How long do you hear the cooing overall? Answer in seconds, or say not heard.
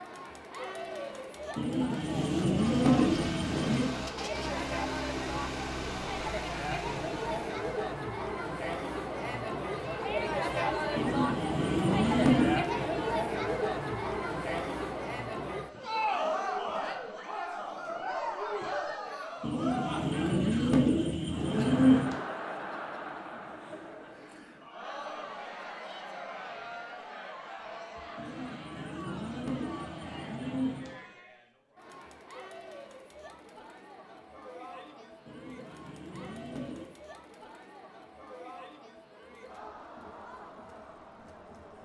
11 s.